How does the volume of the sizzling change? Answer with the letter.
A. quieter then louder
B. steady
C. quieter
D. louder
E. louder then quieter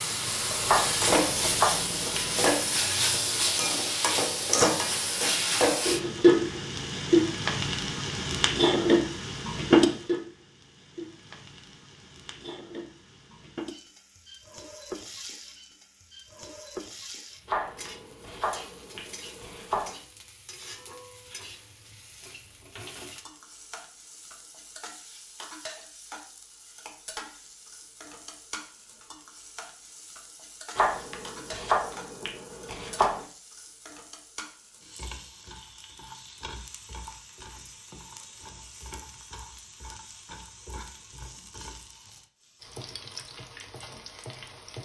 C.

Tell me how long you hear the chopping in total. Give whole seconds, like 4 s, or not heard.
7 s.